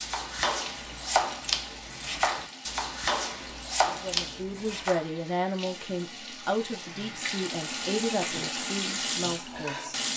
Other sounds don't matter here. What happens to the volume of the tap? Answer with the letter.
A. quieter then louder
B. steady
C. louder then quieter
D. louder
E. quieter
D.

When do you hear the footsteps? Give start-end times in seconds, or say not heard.
not heard.